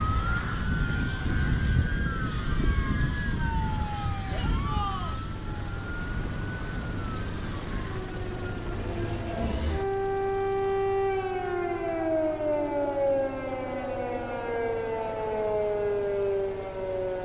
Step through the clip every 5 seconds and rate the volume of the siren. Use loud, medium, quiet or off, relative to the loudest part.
loud, medium, loud, loud.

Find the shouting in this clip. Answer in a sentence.
The shouting can be heard from 4.3 to 5.2 s.